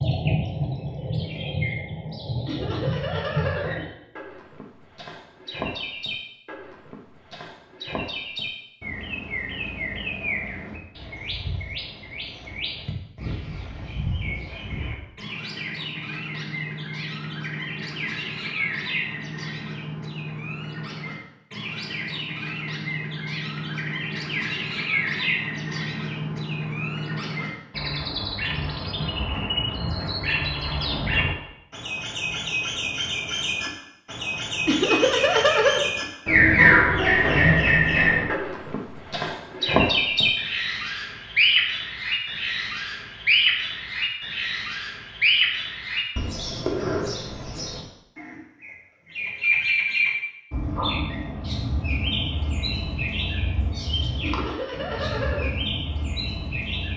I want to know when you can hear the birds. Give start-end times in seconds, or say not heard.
0.0-56.9.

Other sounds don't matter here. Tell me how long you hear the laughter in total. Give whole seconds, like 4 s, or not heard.
4 s.